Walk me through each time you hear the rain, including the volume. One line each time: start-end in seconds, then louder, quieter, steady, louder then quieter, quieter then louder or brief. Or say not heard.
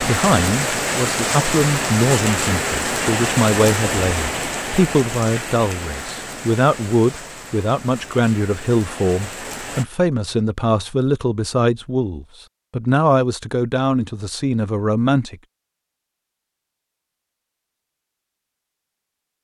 0.0-9.8 quieter.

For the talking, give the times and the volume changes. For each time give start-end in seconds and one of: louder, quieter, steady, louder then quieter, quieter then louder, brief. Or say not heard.
0.0-15.3 steady.